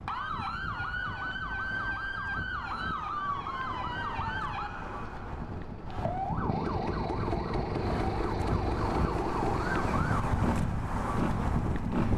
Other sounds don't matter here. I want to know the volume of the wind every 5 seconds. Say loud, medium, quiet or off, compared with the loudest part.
medium, loud, loud.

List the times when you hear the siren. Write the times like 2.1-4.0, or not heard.
0.0-10.3.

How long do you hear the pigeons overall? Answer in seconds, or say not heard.
not heard.